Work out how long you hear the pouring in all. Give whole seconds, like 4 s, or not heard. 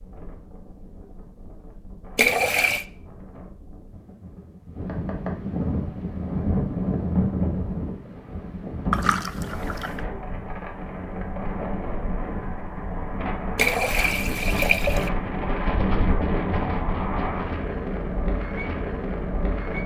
3 s.